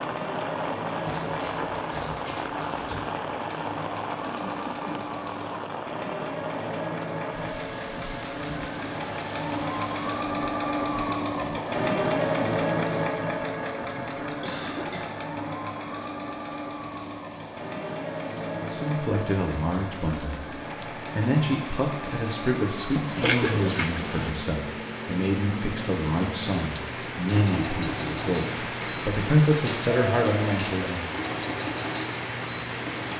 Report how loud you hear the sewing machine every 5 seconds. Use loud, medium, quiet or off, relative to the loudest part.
medium, medium, loud, medium, medium, medium, medium.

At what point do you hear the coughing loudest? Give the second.
23 s.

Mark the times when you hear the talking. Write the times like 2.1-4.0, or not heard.
18.6-31.3.